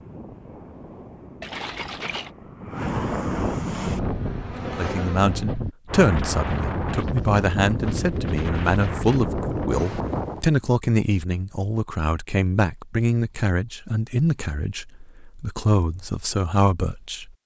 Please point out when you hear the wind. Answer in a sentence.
The wind can be heard from 0.0 to 10.4 s.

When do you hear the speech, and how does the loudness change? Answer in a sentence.
You can hear the speech from 4.6 to 17.3 s, at a steady volume.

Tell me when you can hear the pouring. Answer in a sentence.
The pouring can be heard from 1.4 to 2.3 s.